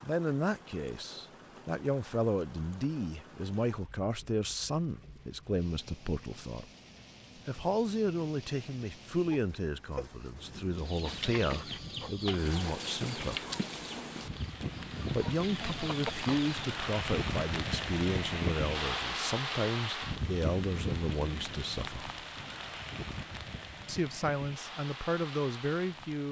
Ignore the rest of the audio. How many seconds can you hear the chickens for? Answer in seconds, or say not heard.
6 s.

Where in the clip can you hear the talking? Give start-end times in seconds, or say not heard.
0.0-6.7, 7.5-13.4, 15.1-22.1, 23.9-26.2.